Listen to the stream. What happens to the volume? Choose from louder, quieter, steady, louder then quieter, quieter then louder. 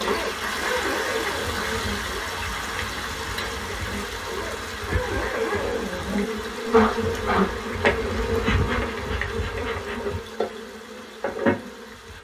quieter.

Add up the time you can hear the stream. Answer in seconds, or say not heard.
12 s.